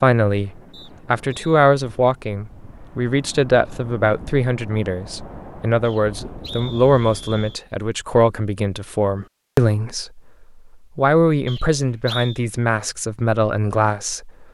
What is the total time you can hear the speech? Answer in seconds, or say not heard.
14 s.